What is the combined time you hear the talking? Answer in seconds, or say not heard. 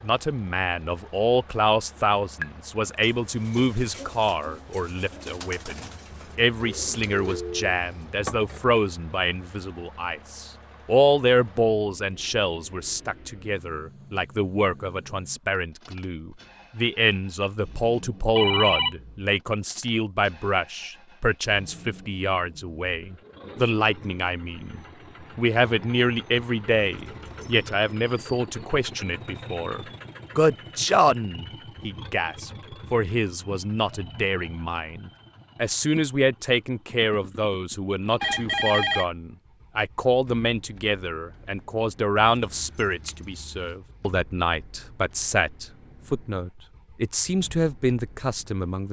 49 s.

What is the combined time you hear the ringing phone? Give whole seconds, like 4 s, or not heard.
2 s.